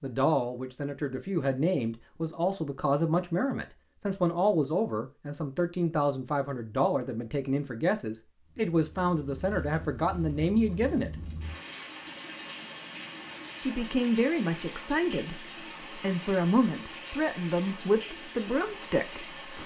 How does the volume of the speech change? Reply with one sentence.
The loudness of the speech stays about the same.